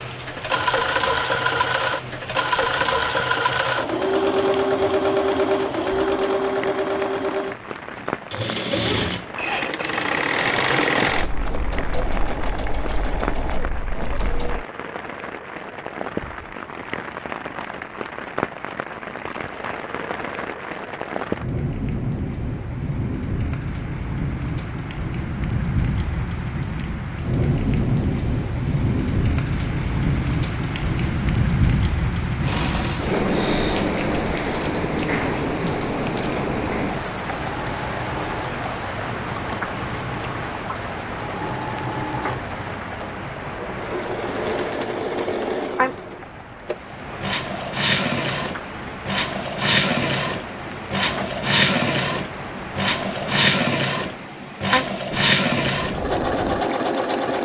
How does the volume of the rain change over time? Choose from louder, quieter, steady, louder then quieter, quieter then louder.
louder then quieter.